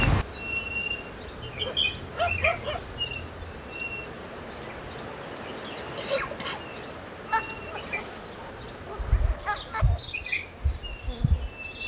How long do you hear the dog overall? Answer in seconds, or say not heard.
4 s.